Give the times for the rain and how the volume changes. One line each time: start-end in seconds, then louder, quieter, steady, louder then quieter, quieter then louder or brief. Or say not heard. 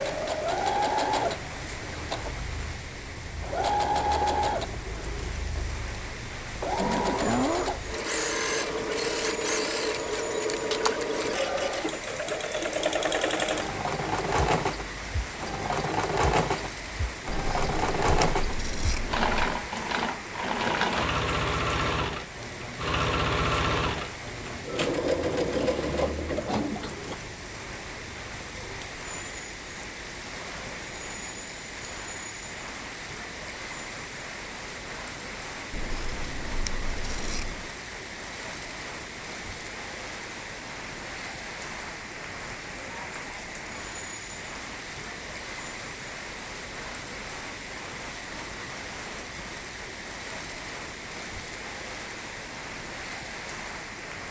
0.0-54.2 steady.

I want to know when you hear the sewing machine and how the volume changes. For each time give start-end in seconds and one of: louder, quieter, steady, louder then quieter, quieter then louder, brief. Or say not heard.
0.0-27.1 steady.